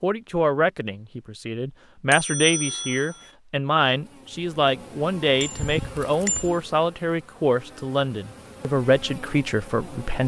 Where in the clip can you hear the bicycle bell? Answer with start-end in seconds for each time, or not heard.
2.1-3.3, 5.4-6.6.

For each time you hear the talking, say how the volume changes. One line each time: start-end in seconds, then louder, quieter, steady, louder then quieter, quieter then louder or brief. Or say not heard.
0.0-10.2 steady.